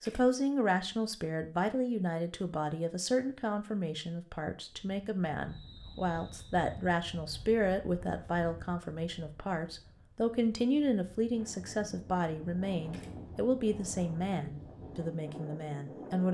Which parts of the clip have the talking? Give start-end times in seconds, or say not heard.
0.0-16.2.